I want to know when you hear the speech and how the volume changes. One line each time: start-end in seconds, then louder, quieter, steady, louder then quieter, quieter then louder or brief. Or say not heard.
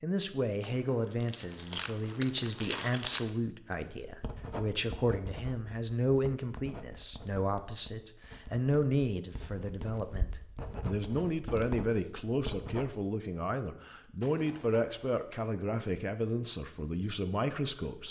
0.0-18.0 steady.